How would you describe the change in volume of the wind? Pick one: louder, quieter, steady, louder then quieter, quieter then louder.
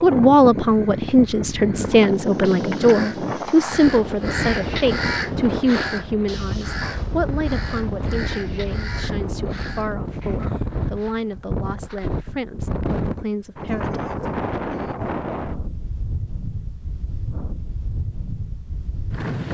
quieter.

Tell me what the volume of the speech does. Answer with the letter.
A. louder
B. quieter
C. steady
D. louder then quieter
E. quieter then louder
B.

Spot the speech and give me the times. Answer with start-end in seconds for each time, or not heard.
0.0-14.0.